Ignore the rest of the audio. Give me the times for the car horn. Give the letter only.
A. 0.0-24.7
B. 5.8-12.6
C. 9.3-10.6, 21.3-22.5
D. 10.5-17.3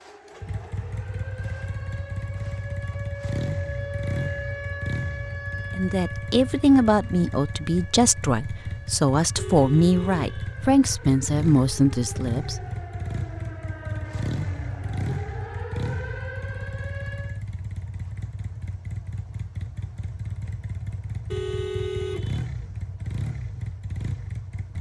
C.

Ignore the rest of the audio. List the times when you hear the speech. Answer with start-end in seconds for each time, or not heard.
5.8-12.6.